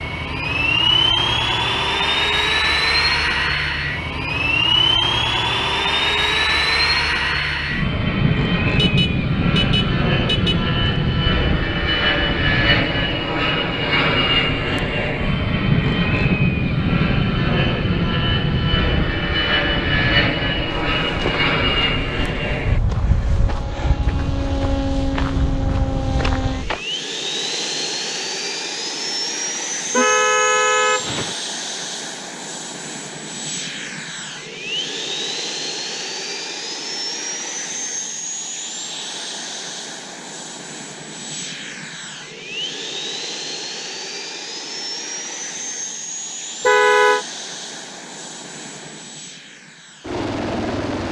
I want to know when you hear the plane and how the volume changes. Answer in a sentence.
The plane can be heard from 0.0 to 51.0 s, getting quieter.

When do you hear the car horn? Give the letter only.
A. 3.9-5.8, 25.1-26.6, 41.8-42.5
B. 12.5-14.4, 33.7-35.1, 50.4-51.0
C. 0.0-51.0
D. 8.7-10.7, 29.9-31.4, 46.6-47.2
D.